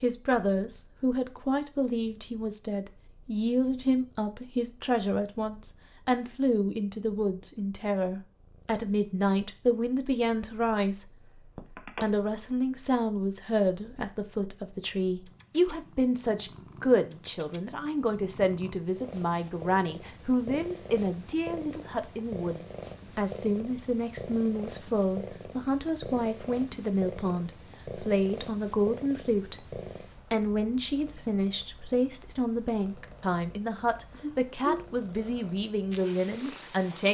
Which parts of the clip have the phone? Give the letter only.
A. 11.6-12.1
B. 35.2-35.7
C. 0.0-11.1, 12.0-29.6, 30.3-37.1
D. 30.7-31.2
A.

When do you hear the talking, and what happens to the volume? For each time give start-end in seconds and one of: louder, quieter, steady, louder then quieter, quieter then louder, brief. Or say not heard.
0.0-11.1 steady
12.0-29.6 steady
30.3-37.1 steady.